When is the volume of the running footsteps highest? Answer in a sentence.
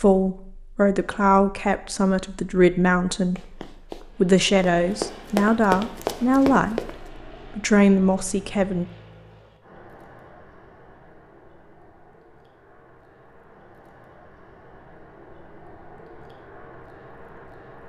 The loudest moment of the running footsteps is at 6 seconds.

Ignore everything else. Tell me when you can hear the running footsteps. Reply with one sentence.
You can hear the running footsteps from 3.4 to 6.9 s.